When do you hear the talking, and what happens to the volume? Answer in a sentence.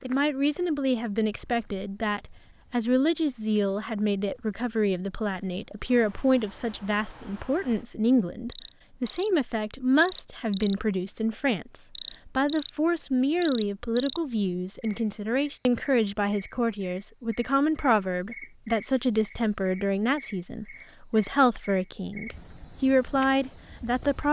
You can hear the talking from 0.0 to 24.2 s, at a steady volume.